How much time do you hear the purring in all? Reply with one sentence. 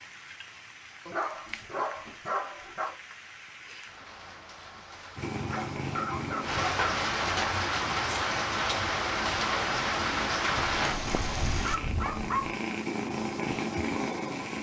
The purring can be heard for 9 seconds in total.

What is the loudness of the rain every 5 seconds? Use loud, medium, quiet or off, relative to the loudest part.
quiet, loud, loud.